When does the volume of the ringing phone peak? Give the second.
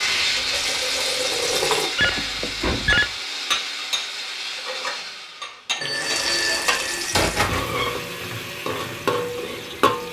3 s.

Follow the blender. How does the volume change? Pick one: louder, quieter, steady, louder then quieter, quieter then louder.
quieter.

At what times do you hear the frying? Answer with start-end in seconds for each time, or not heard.
0.0-2.0, 5.9-10.0.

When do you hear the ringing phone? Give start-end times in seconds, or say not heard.
1.9-3.1, 5.8-7.2.